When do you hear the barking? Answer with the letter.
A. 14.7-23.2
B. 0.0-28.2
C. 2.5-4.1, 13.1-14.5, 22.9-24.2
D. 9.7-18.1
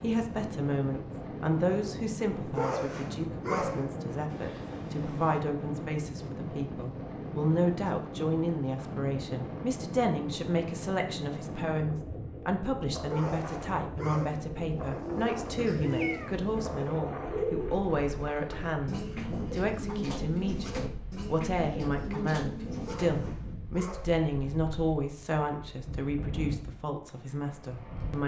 C.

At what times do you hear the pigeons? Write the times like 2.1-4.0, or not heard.
14.7-23.2.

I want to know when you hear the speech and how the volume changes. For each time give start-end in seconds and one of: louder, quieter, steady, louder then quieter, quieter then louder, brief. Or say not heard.
0.0-28.2 steady.